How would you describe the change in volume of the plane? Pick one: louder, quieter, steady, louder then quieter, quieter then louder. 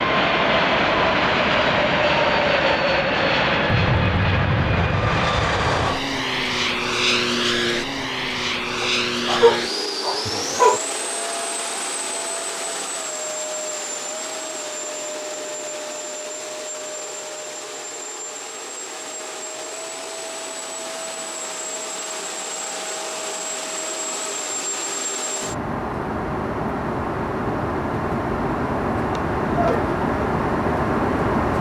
quieter then louder.